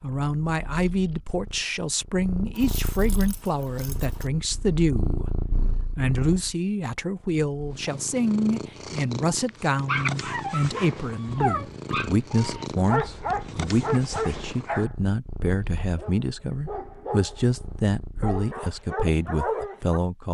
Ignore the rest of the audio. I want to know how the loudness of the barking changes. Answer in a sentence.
The loudness of the barking goes down, then up.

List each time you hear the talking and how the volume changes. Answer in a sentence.
You can hear the talking from 0.0 to 20.2 s, at a steady volume.